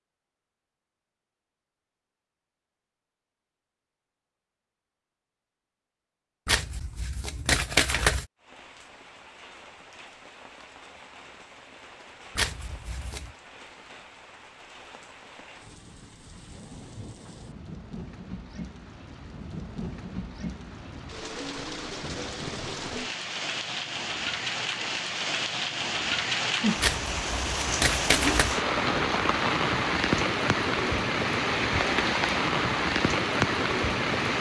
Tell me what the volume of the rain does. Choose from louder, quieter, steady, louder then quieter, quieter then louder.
louder.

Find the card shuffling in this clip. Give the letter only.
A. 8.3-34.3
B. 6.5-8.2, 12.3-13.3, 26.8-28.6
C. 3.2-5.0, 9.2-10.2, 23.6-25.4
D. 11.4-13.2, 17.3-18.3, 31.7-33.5
B.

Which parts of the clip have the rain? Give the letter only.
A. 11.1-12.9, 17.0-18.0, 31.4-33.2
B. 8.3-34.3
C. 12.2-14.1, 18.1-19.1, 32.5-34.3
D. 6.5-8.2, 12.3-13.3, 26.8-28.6
B.